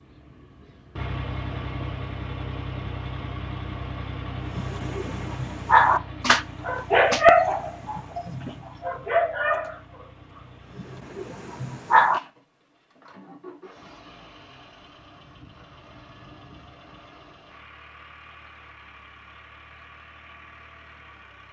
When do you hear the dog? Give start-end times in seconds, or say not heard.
4.5-12.2.